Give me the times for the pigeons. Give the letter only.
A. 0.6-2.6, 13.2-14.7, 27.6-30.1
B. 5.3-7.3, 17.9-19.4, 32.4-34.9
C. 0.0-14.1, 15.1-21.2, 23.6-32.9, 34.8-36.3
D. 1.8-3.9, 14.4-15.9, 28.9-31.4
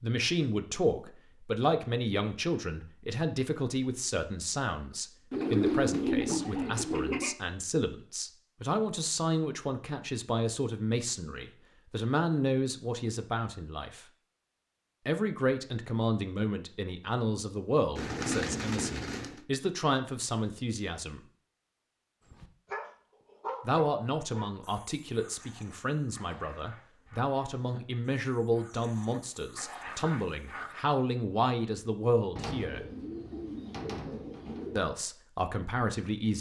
B.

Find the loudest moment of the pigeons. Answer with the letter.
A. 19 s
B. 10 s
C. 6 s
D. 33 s
C.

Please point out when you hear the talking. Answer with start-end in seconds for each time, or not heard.
0.0-14.1, 15.1-21.2, 23.6-32.9, 34.8-36.3.